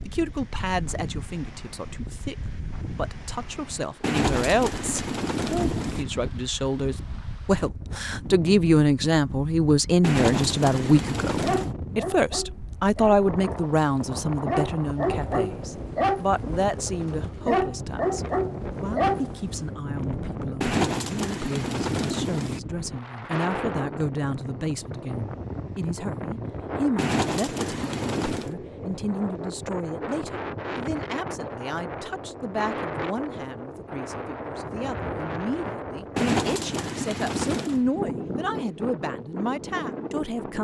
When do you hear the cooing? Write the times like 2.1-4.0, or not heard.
4.0-6.0, 10.0-11.8, 20.6-22.6, 26.9-28.6, 36.1-37.9.